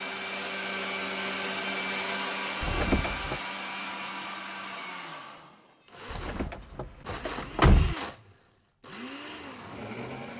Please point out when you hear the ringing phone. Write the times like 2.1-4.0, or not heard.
not heard.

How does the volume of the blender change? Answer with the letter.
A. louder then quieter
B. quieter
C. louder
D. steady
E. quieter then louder
B.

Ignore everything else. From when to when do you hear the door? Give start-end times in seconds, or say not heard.
2.6-3.4, 6.1-8.0.